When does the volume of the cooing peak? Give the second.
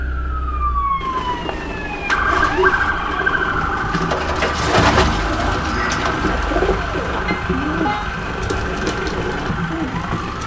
5 s.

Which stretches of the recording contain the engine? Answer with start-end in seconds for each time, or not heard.
0.0-10.4.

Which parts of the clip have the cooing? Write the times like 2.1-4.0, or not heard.
1.1-10.4.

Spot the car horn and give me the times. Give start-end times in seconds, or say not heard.
7.2-8.1.